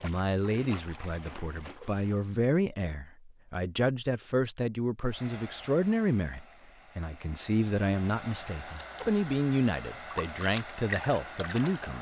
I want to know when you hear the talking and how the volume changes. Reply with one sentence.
The talking can be heard from 0.0 to 11.9 s, at a steady volume.